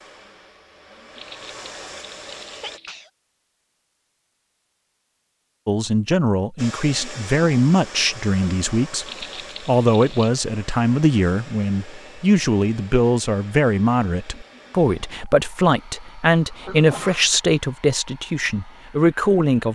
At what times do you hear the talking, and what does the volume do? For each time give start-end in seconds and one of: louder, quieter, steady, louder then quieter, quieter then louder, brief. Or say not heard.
5.7-19.7 steady.